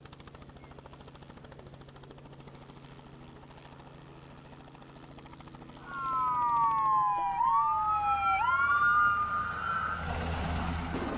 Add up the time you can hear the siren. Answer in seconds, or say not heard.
5 s.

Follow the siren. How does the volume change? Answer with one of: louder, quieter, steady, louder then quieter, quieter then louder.
quieter.